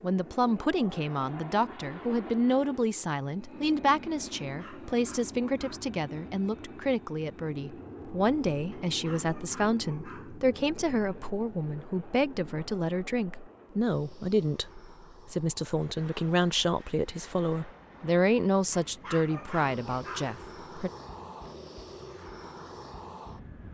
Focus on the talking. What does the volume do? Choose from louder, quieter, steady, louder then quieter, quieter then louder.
steady.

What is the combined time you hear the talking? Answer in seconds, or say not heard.
21 s.